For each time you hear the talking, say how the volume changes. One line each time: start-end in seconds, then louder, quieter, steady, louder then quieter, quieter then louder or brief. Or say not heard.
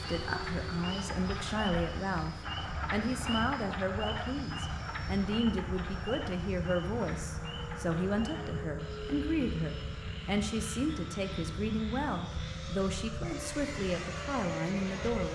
0.0-15.3 steady.